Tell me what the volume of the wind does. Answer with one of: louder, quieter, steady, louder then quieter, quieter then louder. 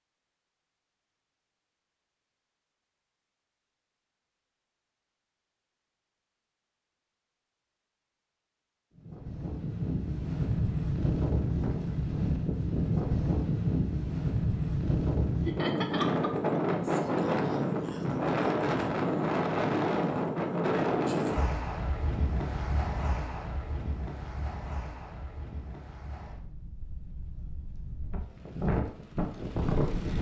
quieter.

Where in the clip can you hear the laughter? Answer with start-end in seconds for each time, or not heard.
15.4-16.6.